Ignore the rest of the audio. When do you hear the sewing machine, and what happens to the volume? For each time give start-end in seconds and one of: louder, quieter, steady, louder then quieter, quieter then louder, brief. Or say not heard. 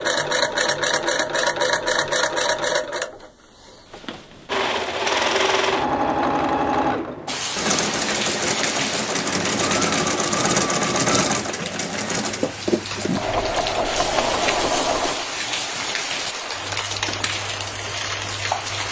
0.0-18.8 quieter.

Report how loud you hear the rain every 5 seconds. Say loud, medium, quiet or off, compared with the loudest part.
off, loud, loud, loud.